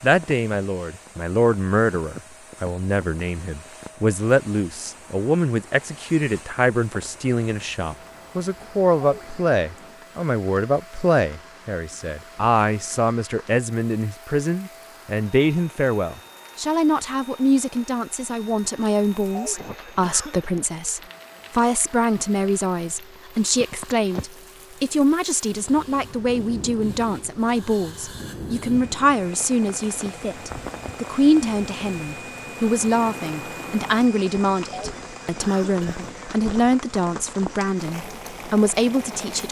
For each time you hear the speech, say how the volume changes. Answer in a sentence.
You can hear the speech from 0.0 to 39.4 s, at a steady volume.